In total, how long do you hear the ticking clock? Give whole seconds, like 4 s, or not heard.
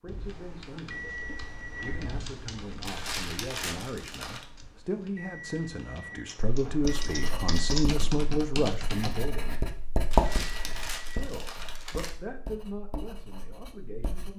not heard.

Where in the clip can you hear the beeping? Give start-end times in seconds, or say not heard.
0.9-2.1, 5.2-7.7, 10.4-11.2.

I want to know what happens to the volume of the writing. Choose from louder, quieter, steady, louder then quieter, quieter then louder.
louder then quieter.